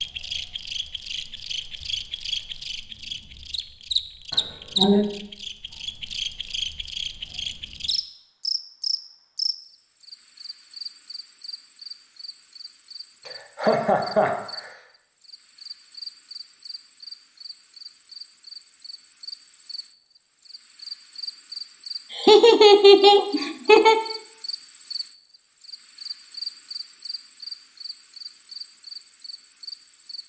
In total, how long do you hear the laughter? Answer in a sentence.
You can hear the laughter for 4 seconds altogether.